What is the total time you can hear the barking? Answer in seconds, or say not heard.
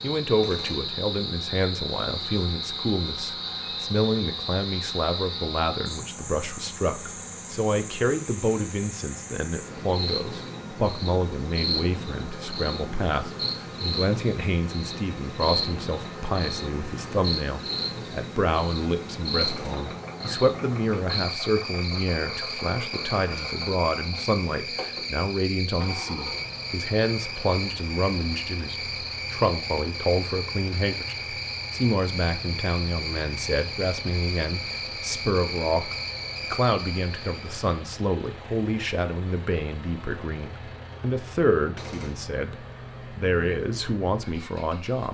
not heard.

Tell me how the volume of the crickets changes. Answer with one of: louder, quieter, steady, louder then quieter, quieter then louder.
steady.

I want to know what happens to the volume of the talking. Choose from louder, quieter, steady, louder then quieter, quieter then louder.
steady.